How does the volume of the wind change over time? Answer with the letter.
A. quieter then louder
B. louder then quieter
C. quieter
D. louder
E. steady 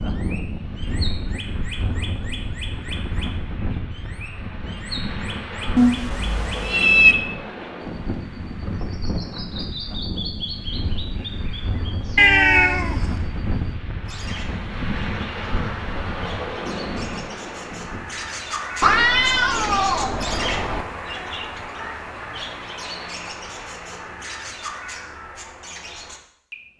E.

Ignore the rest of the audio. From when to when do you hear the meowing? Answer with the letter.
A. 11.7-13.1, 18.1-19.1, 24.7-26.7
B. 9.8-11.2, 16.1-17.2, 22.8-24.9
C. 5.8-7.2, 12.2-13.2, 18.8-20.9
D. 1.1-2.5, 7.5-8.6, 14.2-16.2
C.